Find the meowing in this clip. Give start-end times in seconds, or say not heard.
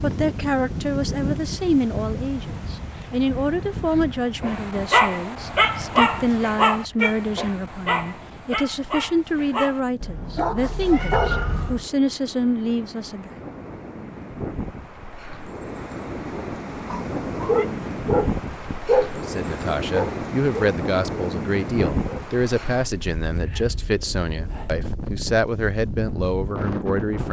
10.2-11.8, 16.9-17.6.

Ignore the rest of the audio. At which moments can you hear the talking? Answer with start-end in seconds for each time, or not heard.
0.0-13.3, 19.1-27.2.